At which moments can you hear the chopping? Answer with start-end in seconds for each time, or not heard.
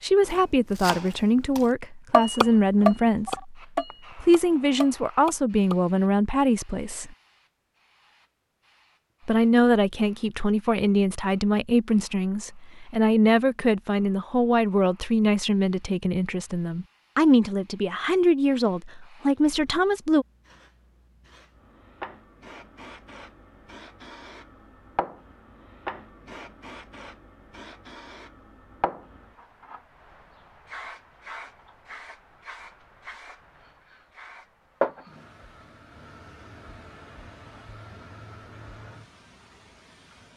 0.2-5.8.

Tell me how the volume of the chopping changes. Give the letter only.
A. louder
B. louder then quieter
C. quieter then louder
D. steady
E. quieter
B.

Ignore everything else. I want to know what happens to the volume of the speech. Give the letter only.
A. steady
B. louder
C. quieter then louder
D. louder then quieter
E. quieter
A.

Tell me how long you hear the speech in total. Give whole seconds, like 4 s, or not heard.
18 s.